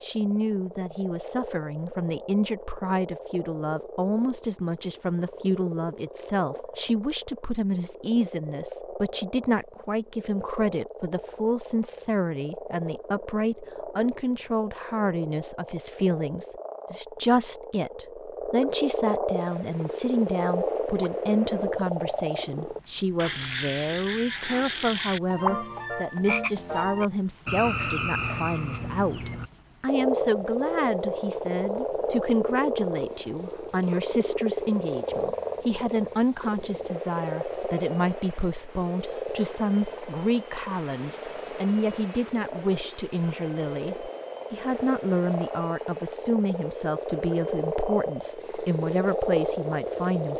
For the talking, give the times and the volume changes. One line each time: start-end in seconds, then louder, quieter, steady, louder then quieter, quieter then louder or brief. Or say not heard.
0.0-50.3 steady.